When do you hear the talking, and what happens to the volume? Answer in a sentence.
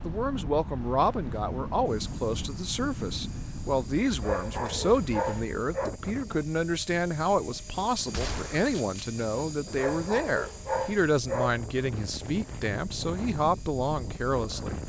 You can hear the talking from 0.0 to 14.8 s, at a steady volume.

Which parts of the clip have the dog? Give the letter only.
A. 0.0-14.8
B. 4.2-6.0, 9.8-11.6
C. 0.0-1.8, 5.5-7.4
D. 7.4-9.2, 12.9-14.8
B.